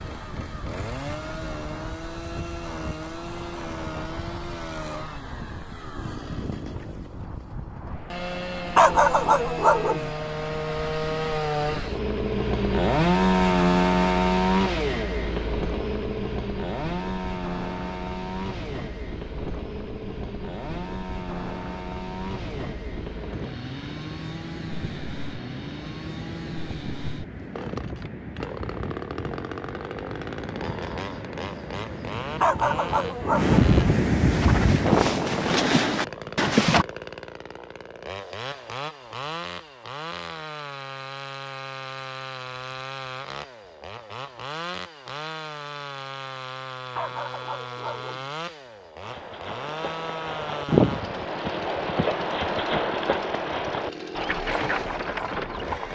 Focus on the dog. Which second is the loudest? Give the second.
9 s.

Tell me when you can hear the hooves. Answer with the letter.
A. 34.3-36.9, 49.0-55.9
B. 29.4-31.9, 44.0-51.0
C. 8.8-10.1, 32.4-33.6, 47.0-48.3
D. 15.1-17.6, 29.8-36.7
A.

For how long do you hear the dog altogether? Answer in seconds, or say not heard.
4 s.